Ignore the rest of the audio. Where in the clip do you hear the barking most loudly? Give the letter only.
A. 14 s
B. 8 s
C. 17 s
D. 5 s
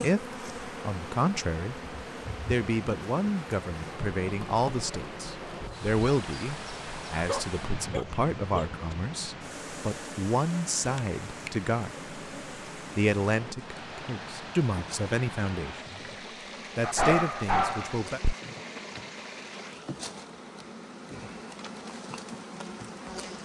C.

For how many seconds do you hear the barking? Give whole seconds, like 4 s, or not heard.
3 s.